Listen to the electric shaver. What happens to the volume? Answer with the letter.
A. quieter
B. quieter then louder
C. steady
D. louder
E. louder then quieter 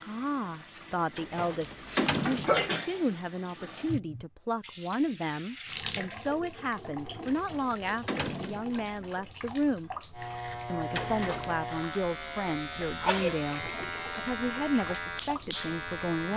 C.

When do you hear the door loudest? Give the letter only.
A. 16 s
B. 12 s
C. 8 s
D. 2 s
D.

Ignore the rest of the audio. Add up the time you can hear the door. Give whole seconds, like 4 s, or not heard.
4 s.